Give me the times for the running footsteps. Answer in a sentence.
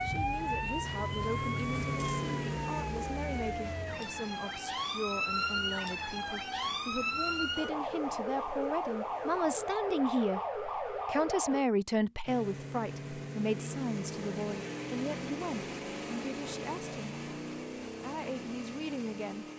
The running footsteps can't be heard in this clip.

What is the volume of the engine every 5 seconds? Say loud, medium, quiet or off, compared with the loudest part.
loud, quiet, loud, loud.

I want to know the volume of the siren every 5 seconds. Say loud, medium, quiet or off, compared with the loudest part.
loud, loud, loud, off.